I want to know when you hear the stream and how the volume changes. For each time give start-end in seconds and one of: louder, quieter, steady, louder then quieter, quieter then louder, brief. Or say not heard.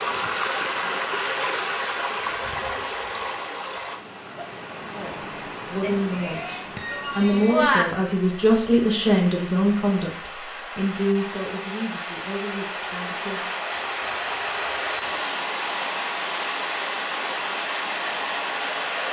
0.0-19.0 quieter then louder.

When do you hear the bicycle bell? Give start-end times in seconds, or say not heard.
5.8-7.8, 13.7-15.1.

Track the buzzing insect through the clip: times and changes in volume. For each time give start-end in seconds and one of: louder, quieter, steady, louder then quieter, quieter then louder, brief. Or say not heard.
not heard.